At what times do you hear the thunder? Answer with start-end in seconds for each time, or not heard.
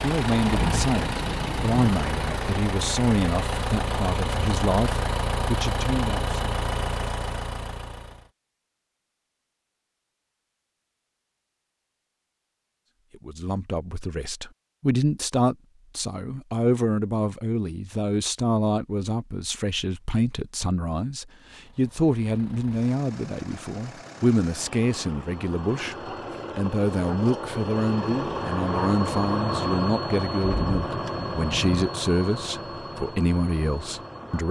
0.5-1.9, 30.4-31.9.